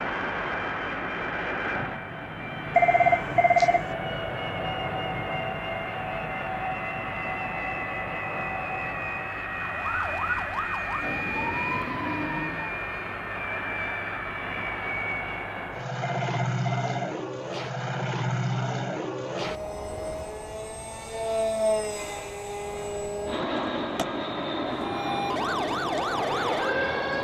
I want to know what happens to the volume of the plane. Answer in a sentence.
The volume of the plane stays about the same.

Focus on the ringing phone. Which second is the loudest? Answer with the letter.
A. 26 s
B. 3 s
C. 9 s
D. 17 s
B.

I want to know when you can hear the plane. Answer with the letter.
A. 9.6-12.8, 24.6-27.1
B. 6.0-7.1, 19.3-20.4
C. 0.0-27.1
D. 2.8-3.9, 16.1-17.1
C.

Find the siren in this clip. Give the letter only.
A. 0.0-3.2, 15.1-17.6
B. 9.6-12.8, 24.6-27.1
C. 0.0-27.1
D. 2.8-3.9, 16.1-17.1
B.